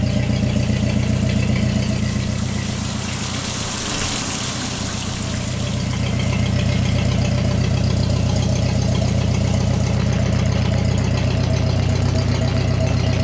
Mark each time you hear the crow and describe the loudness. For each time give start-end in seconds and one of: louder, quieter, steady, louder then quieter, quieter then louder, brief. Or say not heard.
not heard.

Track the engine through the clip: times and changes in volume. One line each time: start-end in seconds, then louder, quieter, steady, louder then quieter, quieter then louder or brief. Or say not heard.
0.0-13.1 quieter then louder.